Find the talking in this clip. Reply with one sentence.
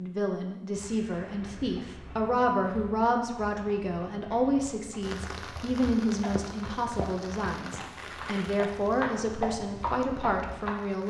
The talking can be heard from 0.0 to 11.0 s.